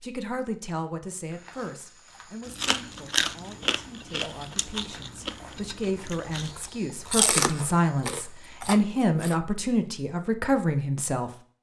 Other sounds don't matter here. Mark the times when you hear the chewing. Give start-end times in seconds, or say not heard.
2.5-9.3.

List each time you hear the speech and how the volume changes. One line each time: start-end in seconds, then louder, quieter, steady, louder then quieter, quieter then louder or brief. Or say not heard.
0.0-11.3 quieter then louder.